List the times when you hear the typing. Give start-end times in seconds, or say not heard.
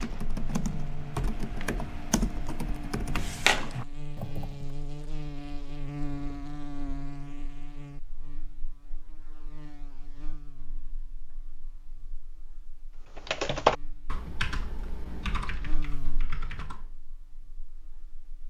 0.0-4.7, 13.2-16.9.